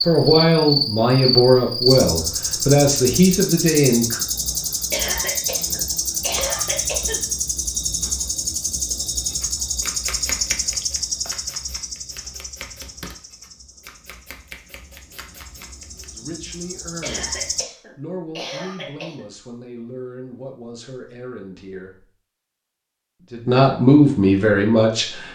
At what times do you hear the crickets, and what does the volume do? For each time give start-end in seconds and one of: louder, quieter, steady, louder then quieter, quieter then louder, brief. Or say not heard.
0.0-17.6 quieter.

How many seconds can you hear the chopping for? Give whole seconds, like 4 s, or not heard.
7 s.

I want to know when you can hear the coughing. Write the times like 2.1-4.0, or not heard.
4.9-7.2, 17.0-19.2.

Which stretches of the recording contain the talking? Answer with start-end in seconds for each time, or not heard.
0.1-4.2, 16.1-22.1, 23.2-25.3.